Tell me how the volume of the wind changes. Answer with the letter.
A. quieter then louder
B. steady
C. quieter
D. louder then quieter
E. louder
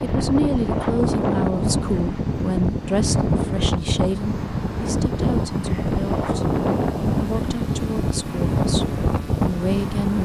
B.